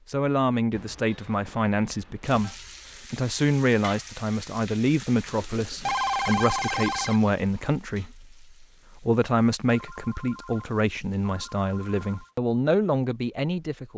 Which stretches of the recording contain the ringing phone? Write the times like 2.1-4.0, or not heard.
0.7-2.5, 5.3-7.3, 9.7-12.3.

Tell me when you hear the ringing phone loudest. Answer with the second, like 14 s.
6 s.